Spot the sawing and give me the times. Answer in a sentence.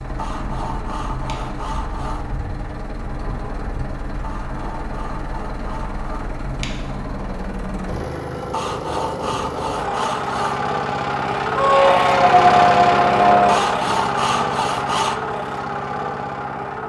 The sawing can be heard from 0.1 to 2.4 s, from 4.2 to 6.4 s, from 8.5 to 10.7 s and from 13.4 to 15.2 s.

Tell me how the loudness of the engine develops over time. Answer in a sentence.
The volume of the engine goes up.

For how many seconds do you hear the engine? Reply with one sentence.
You can hear the engine for 17 seconds altogether.